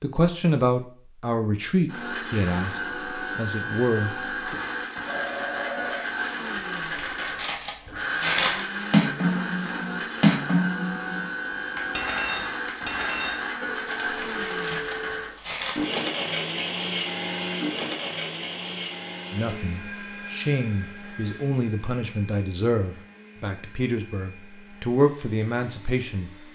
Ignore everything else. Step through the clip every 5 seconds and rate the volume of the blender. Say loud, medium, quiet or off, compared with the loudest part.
loud, loud, loud, loud, quiet, quiet.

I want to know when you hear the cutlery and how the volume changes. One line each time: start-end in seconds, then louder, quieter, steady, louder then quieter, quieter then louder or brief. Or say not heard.
6.8-16.7 quieter.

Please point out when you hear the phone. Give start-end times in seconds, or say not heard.
5.0-6.2, 13.6-15.1, 19.9-21.5.